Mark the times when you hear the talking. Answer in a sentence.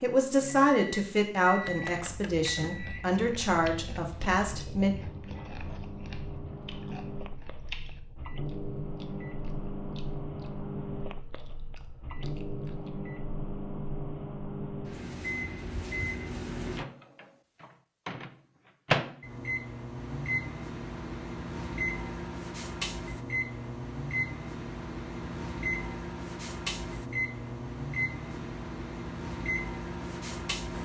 You can hear the talking from 0.0 to 4.9 s.